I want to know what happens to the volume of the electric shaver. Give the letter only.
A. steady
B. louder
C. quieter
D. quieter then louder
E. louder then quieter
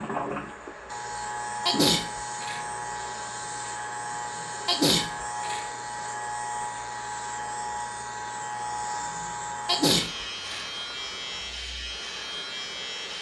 A.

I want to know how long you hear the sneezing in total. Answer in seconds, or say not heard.
3 s.